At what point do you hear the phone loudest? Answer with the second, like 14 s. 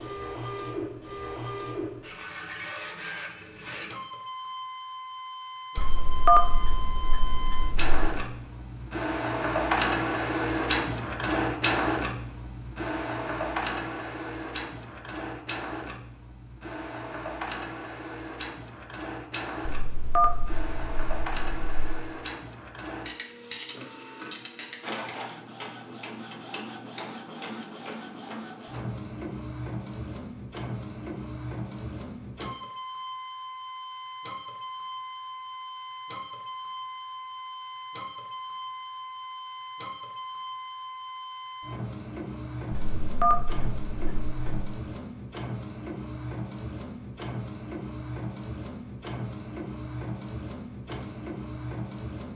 6 s.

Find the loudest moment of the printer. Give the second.
10 s.